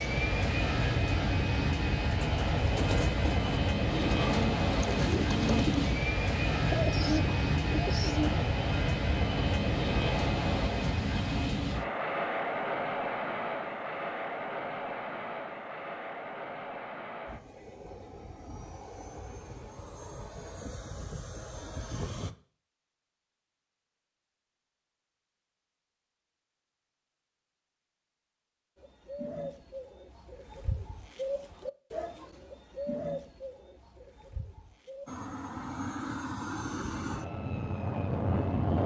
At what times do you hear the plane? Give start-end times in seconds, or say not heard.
0.0-22.4, 35.0-38.8.